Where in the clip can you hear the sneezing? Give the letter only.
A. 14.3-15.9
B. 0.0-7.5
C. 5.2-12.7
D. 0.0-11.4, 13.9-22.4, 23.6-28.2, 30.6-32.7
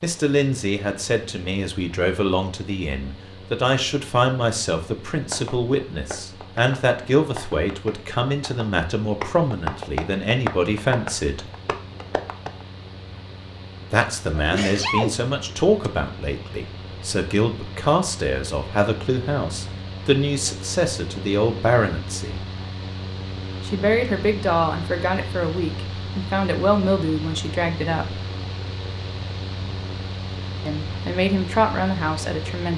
A.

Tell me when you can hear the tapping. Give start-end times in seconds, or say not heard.
5.2-12.7.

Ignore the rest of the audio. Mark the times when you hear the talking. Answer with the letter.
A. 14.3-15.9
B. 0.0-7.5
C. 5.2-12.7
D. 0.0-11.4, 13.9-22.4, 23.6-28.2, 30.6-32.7
D.